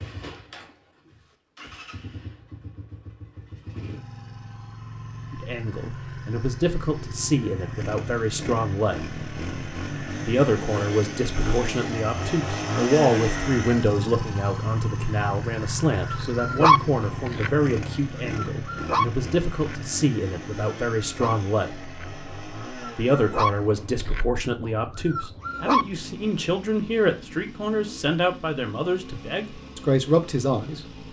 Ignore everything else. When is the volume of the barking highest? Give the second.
17 s.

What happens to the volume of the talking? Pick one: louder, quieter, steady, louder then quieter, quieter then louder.
steady.